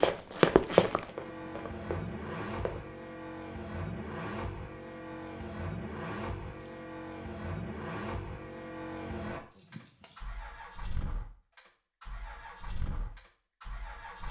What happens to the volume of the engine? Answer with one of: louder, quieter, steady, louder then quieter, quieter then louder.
quieter.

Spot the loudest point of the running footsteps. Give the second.
1 s.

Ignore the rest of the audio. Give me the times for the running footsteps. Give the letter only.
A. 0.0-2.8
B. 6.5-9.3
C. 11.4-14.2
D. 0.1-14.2
A.